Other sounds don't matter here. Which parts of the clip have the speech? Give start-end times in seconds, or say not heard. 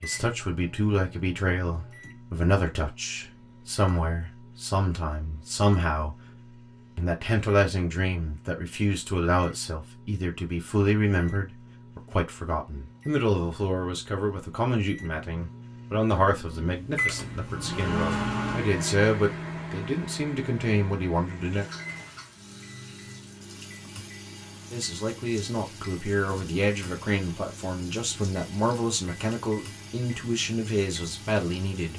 0.0-6.2, 7.0-21.6, 24.7-31.9.